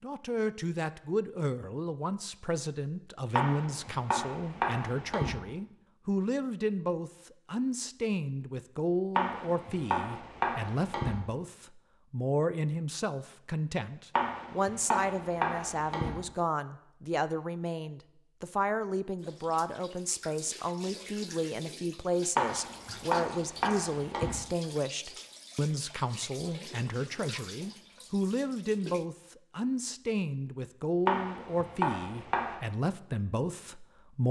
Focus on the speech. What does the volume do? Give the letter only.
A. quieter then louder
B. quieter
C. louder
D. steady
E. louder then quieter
D.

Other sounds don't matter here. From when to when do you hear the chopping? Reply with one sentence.
You can hear the chopping from 3.4 to 5.3 s, from 9.2 to 11.1 s, from 14.2 to 16.1 s, from 22.4 to 24.3 s and from 31.1 to 32.5 s.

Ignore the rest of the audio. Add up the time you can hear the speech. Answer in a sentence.
You can hear the speech for 34 seconds altogether.